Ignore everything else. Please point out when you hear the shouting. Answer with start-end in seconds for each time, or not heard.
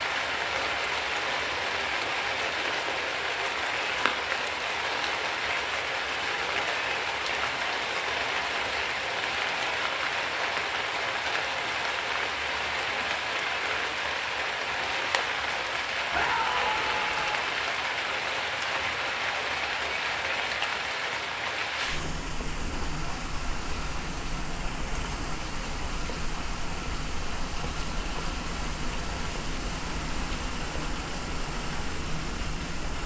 16.1-17.4.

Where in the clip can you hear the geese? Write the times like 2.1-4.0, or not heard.
not heard.